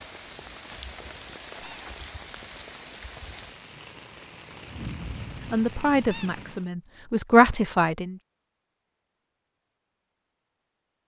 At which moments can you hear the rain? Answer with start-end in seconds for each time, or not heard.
0.0-6.7.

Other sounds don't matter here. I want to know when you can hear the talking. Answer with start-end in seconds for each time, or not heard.
5.4-8.2.